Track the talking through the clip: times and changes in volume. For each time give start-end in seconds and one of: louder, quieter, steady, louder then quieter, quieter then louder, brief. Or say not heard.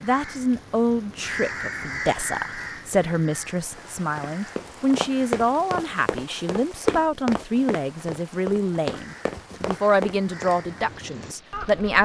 0.0-12.0 steady.